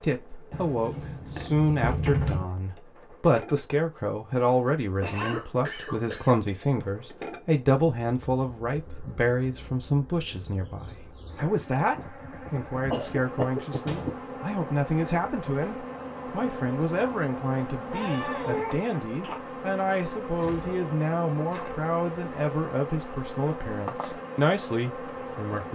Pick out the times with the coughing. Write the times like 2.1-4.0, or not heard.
5.0-6.8, 12.9-14.2, 17.9-19.4.